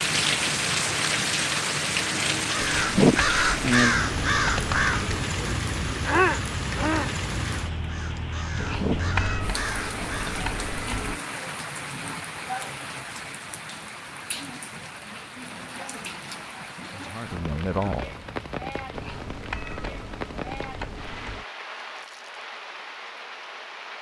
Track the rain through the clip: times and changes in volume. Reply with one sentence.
You can hear the rain from 0.0 to 23.9 s, getting quieter.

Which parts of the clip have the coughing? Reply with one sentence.
You can't hear the coughing here.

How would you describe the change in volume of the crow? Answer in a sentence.
The volume of the crow goes down, then up.